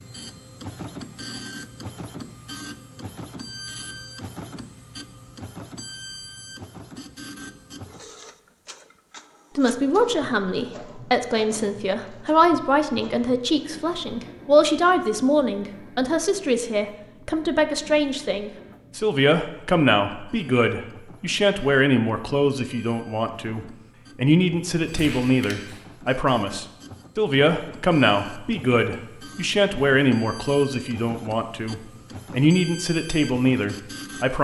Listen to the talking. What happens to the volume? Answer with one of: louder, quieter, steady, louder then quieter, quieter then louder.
steady.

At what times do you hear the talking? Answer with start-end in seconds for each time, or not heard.
9.6-34.4.